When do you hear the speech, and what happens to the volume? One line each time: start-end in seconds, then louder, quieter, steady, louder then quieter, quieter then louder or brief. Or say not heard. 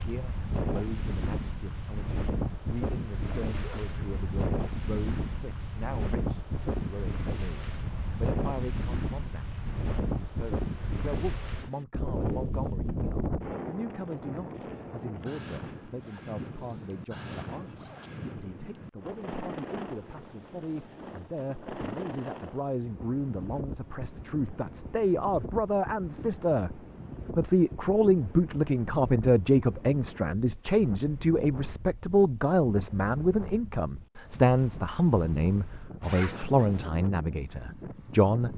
0.0-38.5 louder.